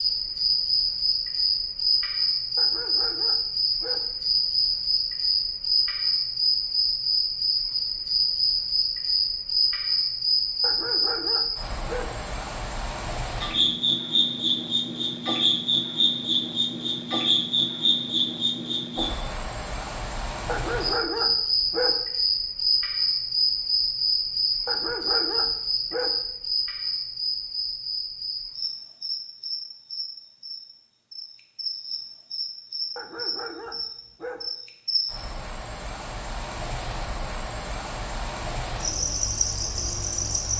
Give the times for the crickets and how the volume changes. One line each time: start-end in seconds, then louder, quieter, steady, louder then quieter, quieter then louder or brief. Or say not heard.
0.0-40.5 quieter.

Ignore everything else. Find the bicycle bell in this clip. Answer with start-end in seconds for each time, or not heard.
not heard.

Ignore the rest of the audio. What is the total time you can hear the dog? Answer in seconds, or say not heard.
8 s.